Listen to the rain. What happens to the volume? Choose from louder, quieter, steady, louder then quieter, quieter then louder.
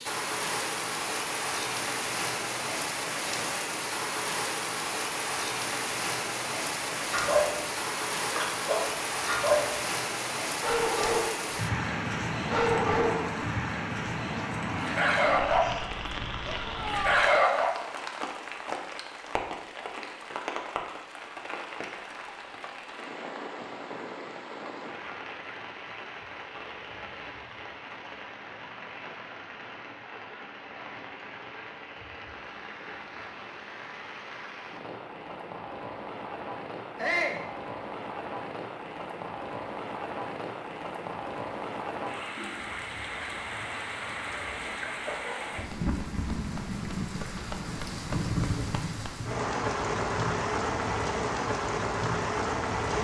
quieter then louder.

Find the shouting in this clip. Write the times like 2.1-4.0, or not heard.
16.4-17.2, 37.0-37.5.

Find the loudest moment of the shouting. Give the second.
37 s.